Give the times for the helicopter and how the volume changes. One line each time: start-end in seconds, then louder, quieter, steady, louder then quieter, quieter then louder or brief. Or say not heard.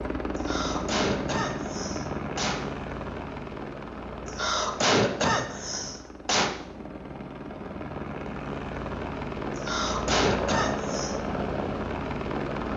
0.0-12.7 quieter then louder.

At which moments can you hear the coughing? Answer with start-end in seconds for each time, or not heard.
0.3-2.6, 4.2-6.5, 9.6-11.2.